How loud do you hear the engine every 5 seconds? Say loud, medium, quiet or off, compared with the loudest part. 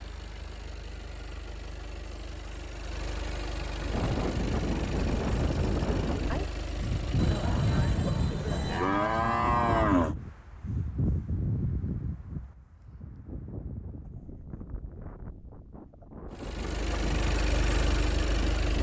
medium, medium, off, loud.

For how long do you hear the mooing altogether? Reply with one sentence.
The mooing can be heard for 3 seconds in total.